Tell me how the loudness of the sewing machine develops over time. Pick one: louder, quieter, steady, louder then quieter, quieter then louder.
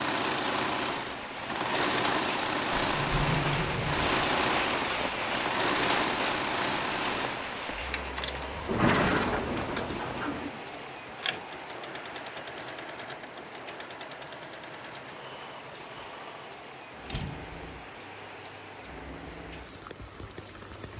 quieter.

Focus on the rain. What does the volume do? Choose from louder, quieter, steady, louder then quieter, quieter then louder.
quieter.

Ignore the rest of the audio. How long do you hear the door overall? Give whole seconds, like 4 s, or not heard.
4 s.